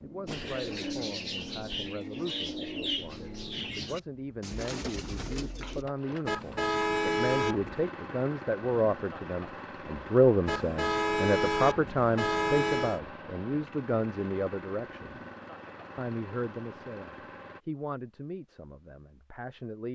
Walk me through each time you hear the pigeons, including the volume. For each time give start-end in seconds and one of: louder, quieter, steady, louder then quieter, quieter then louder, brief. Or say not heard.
0.2-5.8 steady.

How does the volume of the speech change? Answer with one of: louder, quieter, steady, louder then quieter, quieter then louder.
louder then quieter.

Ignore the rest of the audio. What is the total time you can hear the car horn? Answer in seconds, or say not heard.
4 s.